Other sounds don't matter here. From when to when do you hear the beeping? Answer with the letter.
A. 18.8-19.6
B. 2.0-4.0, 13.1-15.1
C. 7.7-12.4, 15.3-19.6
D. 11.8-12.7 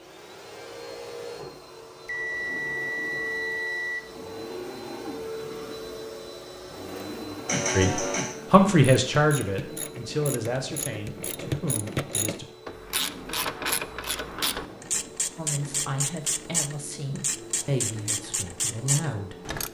B.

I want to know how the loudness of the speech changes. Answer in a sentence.
The loudness of the speech goes down.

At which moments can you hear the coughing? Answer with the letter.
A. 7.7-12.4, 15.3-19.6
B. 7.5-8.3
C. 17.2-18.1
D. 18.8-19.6
B.